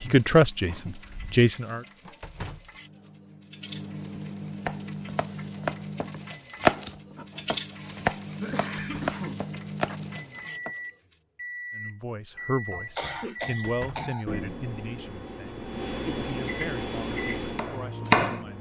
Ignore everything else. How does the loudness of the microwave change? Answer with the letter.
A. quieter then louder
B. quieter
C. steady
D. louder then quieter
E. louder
E.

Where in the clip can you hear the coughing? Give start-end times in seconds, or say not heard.
0.1-1.4, 8.4-10.0, 12.7-14.2.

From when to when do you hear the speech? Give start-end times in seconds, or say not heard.
0.0-1.8, 11.8-18.5.